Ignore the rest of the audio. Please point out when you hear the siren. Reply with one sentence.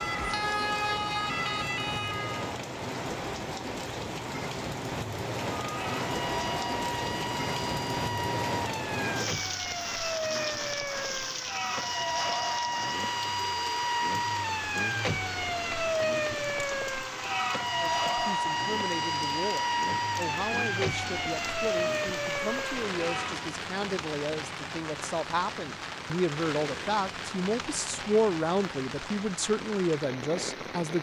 You can hear the siren from 0.0 to 2.5 s and from 5.6 to 23.5 s.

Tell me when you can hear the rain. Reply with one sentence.
The rain can be heard from 0.0 to 30.9 s.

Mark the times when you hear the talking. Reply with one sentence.
You can hear the talking from 17.8 to 30.9 s.